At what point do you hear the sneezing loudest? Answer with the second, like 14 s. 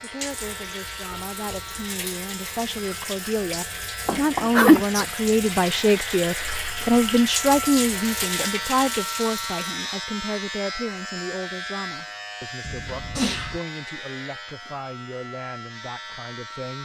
5 s.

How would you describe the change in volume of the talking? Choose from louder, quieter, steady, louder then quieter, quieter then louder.
louder then quieter.